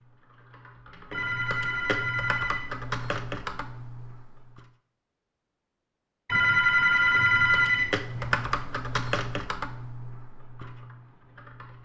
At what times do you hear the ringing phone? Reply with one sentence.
The ringing phone can be heard from 1.1 to 2.7 s and from 6.2 to 8.7 s.